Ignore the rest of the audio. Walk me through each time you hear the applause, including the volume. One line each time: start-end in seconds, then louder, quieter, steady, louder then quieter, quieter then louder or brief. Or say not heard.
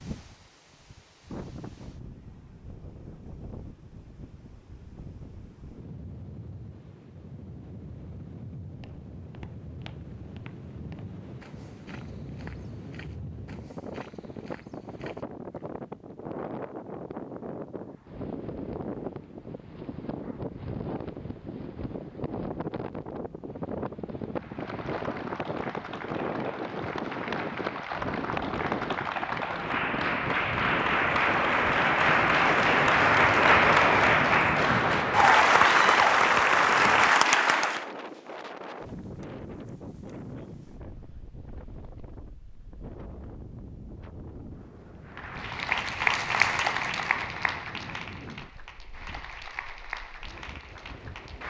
24.4-37.9 louder
45.0-51.4 quieter.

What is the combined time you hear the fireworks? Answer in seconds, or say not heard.
not heard.